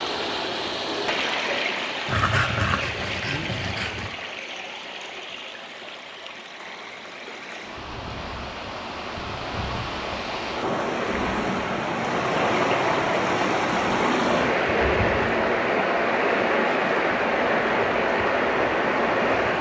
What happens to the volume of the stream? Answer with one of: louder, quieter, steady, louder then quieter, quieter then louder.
quieter then louder.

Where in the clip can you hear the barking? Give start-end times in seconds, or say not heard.
2.0-4.1.